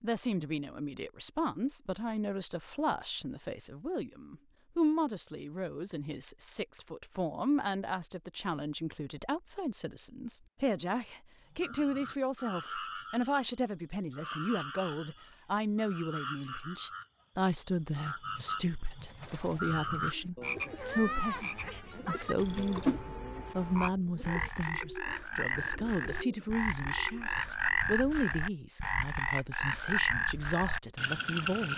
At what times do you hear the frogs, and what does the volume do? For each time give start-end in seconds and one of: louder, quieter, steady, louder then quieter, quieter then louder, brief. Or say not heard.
11.5-31.7 louder.